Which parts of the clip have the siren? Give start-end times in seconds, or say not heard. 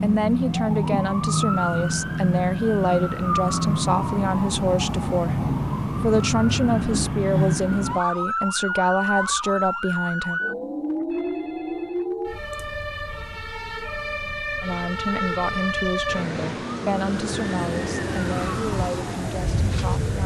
0.0-20.2.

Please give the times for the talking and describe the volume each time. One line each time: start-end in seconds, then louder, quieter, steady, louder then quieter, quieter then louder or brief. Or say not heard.
0.0-10.4 steady
14.6-20.2 quieter.